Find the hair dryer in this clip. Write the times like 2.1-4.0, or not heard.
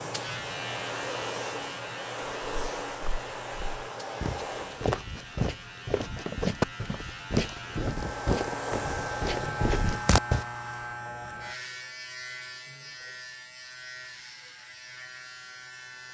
0.0-4.9, 7.8-11.1.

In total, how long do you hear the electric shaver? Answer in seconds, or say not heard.
16 s.